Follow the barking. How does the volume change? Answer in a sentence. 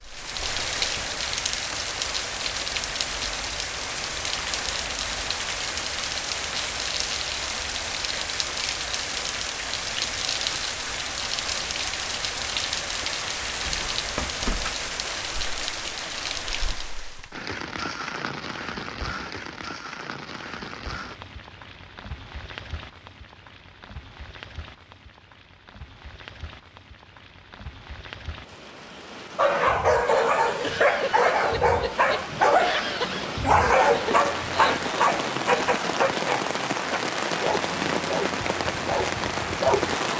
The volume of the barking goes down.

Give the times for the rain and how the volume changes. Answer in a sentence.
The rain can be heard from 0.0 to 40.1 s, getting quieter then louder.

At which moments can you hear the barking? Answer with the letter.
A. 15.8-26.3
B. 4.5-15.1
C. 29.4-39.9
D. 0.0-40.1
C.